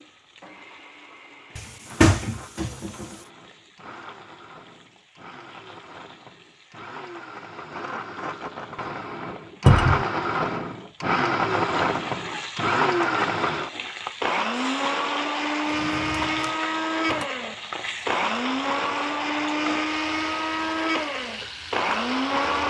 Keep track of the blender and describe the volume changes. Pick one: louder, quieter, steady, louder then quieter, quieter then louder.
louder.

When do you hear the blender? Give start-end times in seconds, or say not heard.
0.1-22.6.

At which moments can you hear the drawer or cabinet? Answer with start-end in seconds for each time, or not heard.
1.6-3.0, 9.7-10.1, 15.7-17.2.